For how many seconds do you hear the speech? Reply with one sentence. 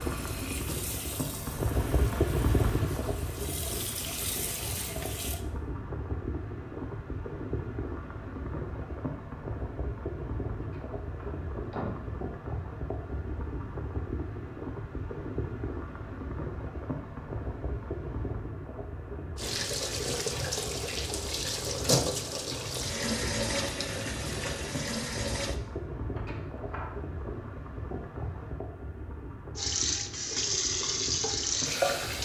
You can't hear the speech here.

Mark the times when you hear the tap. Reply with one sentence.
You can hear the tap from 0.0 to 5.5 s, from 19.4 to 25.6 s and from 29.6 to 32.1 s.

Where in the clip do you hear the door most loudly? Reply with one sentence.
The loudest moment of the door is at 12 seconds.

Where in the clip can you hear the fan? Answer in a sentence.
You can hear the fan from 0.0 to 32.1 s.